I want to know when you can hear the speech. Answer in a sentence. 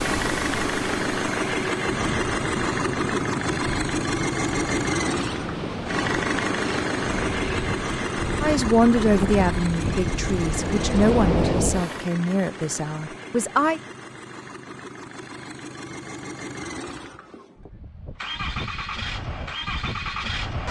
You can hear the speech from 8.4 to 13.8 s.